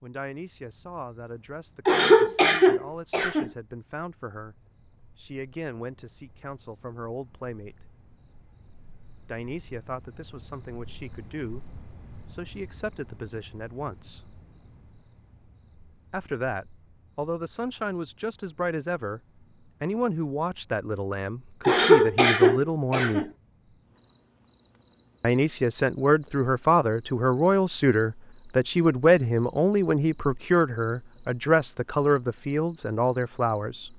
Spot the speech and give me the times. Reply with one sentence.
You can hear the speech from 0.0 to 7.9 s, from 9.2 to 14.3 s, from 16.1 to 19.2 s, from 19.8 to 23.2 s and from 25.2 to 33.9 s.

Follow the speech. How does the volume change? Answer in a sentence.
The volume of the speech goes up.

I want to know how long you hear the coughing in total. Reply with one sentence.
You can hear the coughing for 3 seconds altogether.